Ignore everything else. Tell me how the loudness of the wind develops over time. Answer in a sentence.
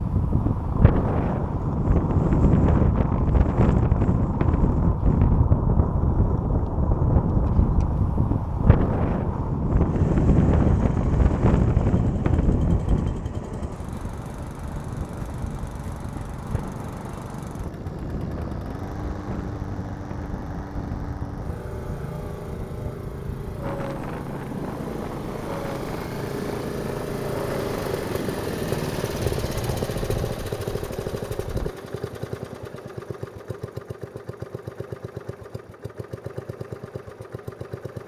The loudness of the wind goes down.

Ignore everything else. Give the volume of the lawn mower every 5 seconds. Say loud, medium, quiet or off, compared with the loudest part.
medium, medium, medium, medium, medium, loud, loud, medium.